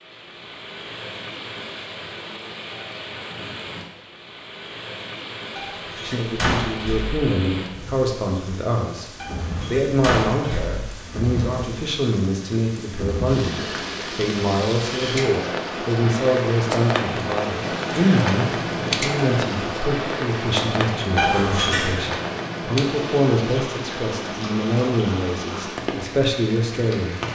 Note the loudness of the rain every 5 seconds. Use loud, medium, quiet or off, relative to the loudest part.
medium, medium, medium, loud, loud, medium.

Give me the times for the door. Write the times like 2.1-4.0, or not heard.
5.5-7.2, 9.2-10.8, 21.1-22.0.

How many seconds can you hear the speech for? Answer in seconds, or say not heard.
21 s.